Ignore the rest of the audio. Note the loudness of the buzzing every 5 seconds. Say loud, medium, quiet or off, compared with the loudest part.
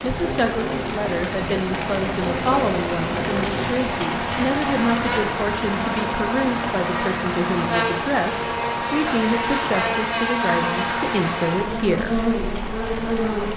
medium, loud, loud.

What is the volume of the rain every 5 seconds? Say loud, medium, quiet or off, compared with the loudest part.
loud, loud, medium.